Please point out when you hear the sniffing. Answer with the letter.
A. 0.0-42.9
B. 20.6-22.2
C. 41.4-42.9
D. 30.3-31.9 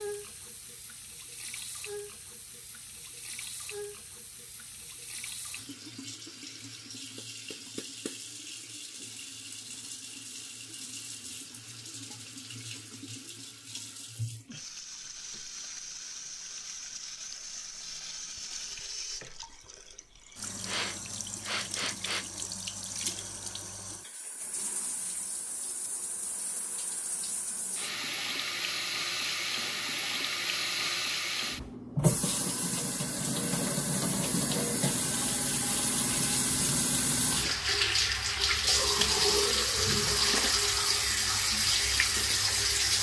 B.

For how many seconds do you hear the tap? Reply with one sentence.
You can hear the tap for 43 seconds altogether.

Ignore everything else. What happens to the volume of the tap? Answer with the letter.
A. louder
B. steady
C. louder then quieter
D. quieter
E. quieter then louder
A.